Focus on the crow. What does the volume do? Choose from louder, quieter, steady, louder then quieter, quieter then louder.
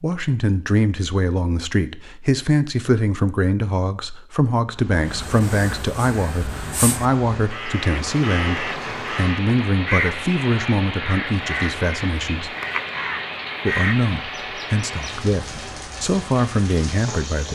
louder.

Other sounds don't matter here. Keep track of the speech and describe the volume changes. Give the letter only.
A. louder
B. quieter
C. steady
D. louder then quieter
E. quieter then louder
C.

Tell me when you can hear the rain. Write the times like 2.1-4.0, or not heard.
4.7-17.5.